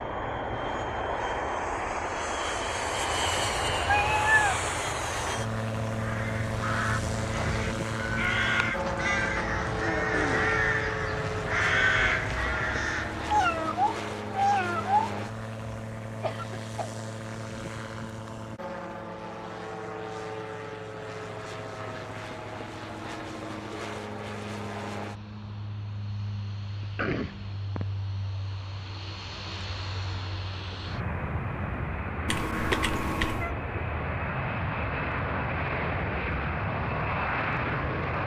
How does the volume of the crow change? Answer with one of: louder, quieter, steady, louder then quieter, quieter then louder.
louder.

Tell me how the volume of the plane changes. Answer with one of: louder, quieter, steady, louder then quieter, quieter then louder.
quieter then louder.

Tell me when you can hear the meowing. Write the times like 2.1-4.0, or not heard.
3.4-4.5, 13.2-15.1, 32.2-33.5.